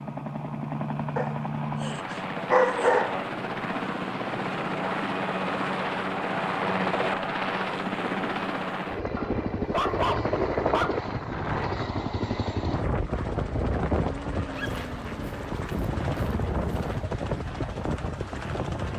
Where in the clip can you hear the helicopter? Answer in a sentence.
The helicopter can be heard from 0.0 to 18.9 s.